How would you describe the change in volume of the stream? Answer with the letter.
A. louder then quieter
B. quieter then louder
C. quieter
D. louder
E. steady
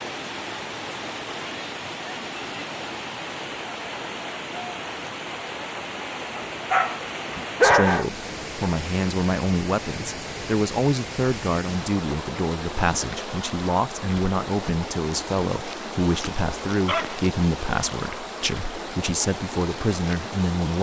E.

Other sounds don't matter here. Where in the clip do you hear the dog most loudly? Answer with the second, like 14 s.
8 s.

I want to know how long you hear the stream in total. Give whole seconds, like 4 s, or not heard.
21 s.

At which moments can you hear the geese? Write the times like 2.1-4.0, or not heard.
not heard.